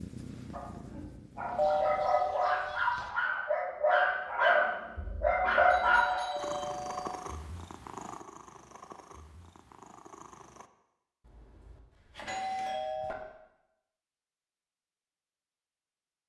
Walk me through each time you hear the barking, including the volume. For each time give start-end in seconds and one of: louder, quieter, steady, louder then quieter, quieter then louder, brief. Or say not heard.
0.5-6.2 louder.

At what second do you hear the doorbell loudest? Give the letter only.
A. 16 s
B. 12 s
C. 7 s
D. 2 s
D.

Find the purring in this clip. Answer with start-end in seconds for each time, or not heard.
0.0-2.1, 6.3-10.7.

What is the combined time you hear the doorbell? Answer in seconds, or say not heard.
5 s.